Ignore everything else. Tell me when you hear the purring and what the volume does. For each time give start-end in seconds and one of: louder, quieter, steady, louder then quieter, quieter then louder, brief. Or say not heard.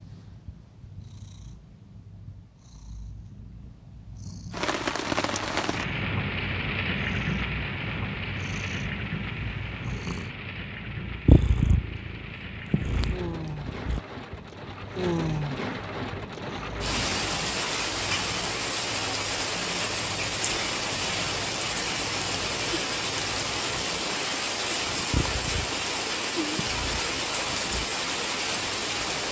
0.0-29.2 louder then quieter.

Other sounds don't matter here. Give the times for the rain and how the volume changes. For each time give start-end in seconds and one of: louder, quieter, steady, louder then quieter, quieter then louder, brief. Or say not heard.
4.5-29.2 quieter then louder.